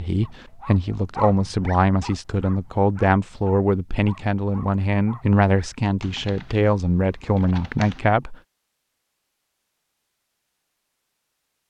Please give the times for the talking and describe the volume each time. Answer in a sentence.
The talking can be heard from 0.0 to 8.3 s, at a steady volume.